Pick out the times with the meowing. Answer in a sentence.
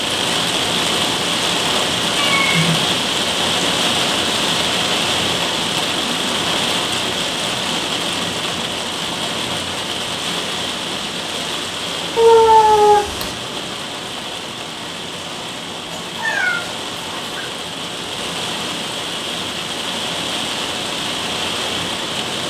The meowing can be heard from 2.1 to 2.9 s, from 12.2 to 13.3 s and from 15.9 to 17.5 s.